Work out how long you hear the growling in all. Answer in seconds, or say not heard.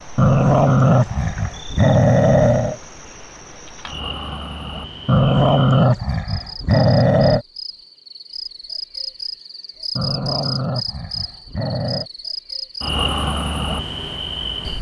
7 s.